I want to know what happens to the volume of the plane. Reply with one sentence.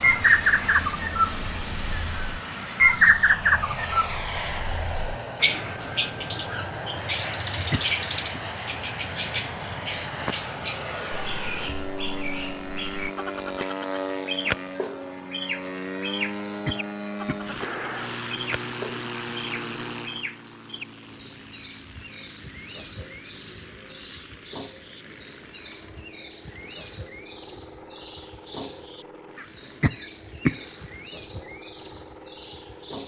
The volume of the plane goes down.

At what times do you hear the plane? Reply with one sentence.
The plane can be heard from 0.0 to 33.0 s.